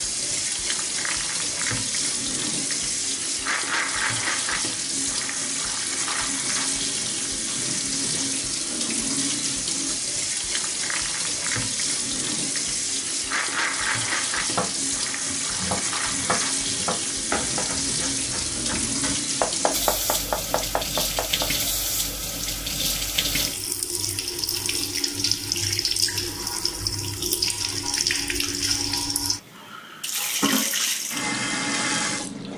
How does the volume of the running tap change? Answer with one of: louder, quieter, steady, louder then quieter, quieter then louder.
steady.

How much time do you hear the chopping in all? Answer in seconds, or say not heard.
7 s.